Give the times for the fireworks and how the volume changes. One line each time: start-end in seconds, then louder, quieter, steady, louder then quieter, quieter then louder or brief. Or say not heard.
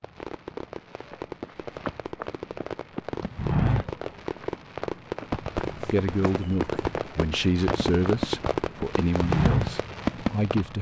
0.0-10.7 louder.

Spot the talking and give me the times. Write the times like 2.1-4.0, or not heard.
5.8-10.7.